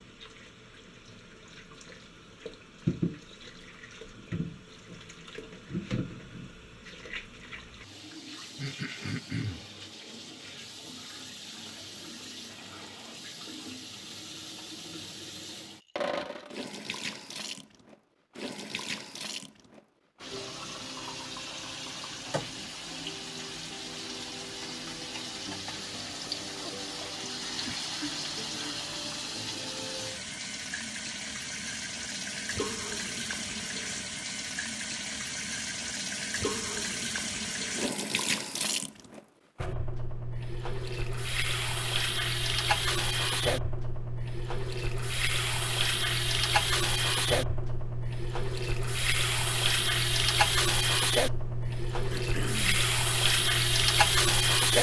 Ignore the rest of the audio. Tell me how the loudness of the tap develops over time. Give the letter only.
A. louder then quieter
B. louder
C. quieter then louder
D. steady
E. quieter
B.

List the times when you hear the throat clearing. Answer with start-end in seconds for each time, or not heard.
8.6-9.7, 52.1-52.9.